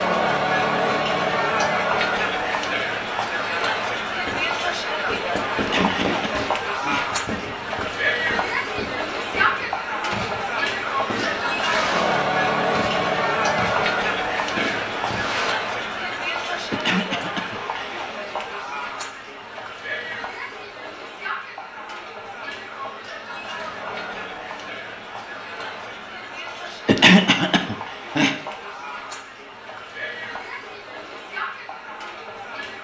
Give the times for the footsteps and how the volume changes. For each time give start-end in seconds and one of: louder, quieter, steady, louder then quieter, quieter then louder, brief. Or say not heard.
not heard.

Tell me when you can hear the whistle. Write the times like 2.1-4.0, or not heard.
not heard.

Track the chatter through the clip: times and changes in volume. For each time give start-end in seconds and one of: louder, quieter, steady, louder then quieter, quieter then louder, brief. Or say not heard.
0.0-32.8 quieter.